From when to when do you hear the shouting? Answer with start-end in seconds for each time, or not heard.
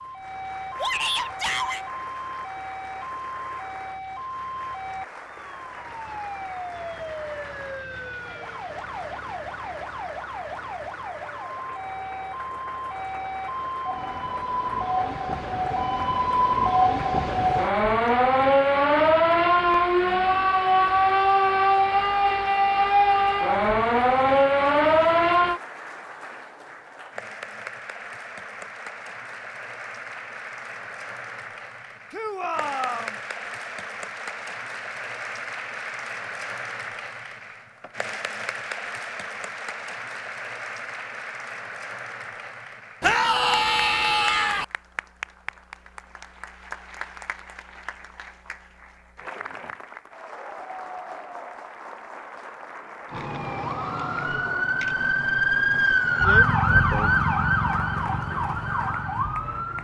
0.8-1.9, 32.1-33.1, 43.0-44.6.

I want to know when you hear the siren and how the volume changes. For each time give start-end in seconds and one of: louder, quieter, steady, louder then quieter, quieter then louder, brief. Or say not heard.
0.0-25.6 louder
53.0-59.8 louder then quieter.